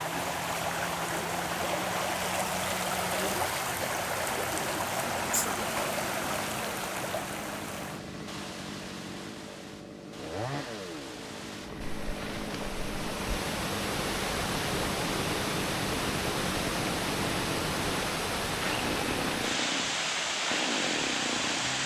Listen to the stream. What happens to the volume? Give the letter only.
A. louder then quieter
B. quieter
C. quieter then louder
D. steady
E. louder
C.